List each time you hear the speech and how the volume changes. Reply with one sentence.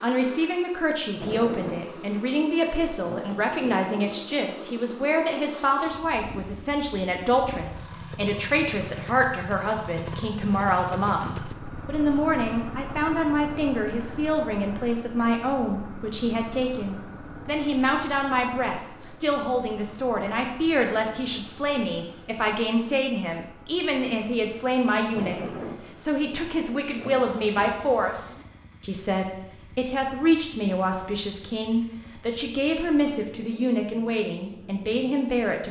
The speech can be heard from 0.0 to 35.6 s, at a steady volume.